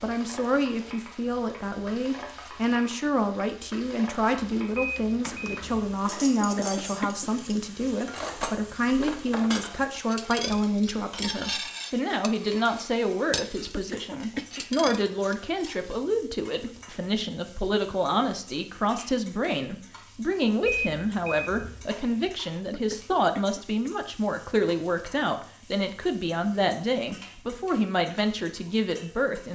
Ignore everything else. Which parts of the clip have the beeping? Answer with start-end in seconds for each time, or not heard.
4.8-6.0, 20.6-21.9.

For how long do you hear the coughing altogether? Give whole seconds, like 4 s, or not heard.
4 s.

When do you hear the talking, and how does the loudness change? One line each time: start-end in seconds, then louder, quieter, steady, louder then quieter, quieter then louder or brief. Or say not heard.
0.0-29.5 steady.